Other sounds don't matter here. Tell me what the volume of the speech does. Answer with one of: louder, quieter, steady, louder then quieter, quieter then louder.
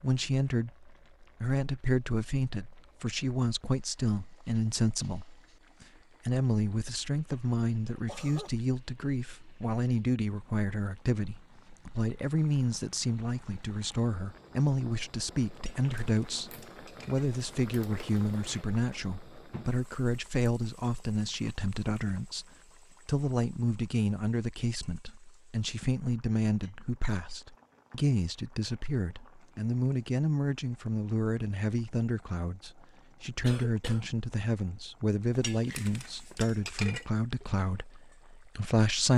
steady.